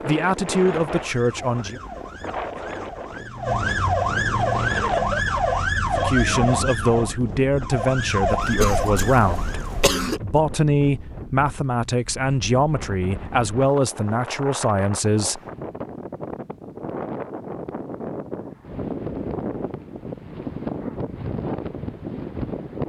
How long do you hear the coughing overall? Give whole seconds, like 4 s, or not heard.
2 s.